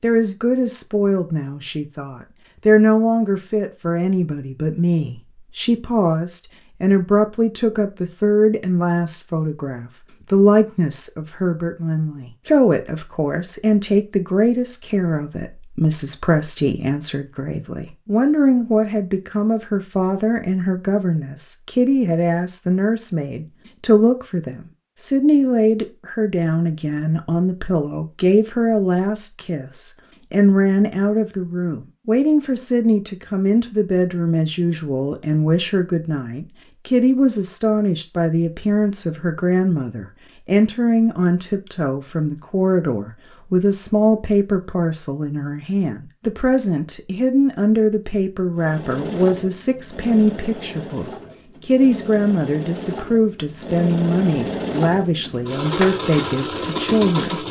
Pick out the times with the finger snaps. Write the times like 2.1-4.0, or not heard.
not heard.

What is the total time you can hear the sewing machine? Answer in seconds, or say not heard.
9 s.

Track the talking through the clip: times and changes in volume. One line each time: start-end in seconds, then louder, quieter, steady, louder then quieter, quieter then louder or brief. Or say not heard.
0.0-57.4 steady.